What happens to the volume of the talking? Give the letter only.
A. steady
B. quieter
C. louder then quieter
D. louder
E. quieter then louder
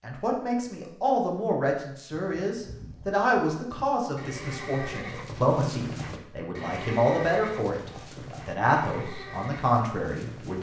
A.